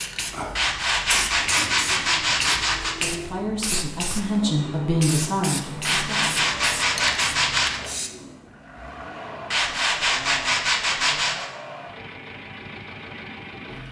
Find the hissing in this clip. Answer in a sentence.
You can hear the hissing from 0.0 to 8.1 s.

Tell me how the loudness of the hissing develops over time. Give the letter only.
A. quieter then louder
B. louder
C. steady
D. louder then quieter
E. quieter
C.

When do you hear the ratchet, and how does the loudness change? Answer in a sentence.
The ratchet can't be heard in this clip.